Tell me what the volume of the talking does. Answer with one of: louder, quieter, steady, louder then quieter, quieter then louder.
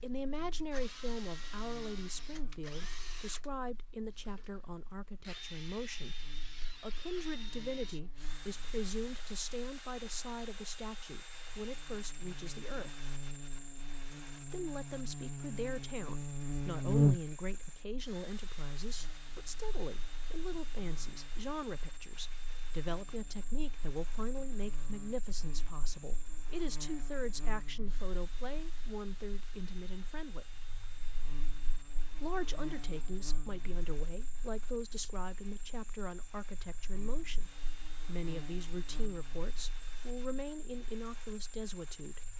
steady.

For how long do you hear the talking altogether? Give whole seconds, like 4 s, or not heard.
39 s.